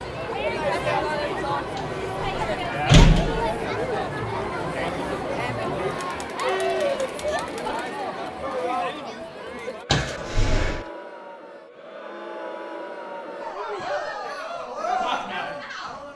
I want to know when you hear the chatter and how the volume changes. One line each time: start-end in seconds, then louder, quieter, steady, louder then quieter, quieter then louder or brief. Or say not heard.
0.0-16.1 quieter then louder.